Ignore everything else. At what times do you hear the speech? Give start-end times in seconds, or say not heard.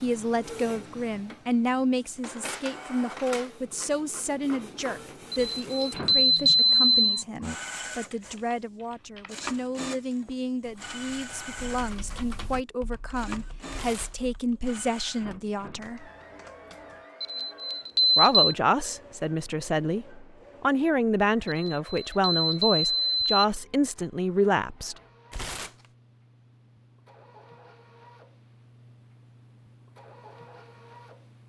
0.0-16.1, 18.1-24.9.